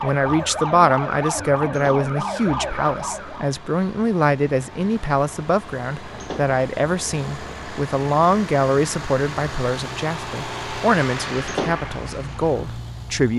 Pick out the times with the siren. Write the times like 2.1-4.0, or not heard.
0.0-3.5.